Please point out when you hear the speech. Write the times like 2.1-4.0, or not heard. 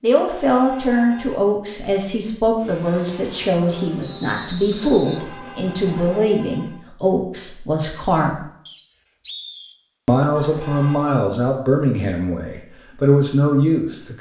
0.0-8.4, 10.1-14.1.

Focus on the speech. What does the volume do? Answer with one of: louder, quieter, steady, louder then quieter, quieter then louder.
steady.